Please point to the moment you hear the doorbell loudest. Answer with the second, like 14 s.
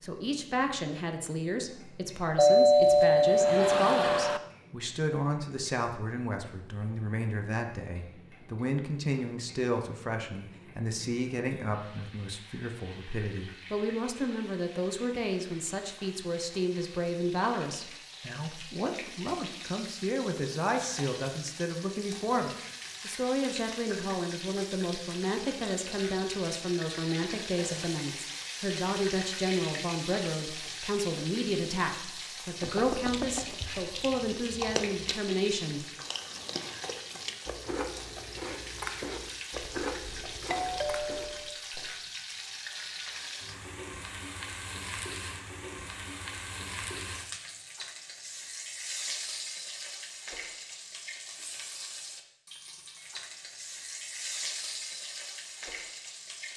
3 s.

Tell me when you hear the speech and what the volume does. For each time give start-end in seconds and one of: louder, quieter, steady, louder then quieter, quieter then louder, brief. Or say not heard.
0.0-35.9 steady.